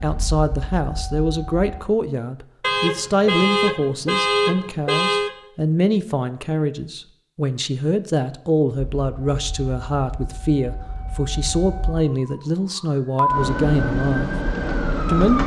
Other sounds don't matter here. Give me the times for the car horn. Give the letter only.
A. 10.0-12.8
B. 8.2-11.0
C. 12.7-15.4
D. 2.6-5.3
D.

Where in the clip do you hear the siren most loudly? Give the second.
14 s.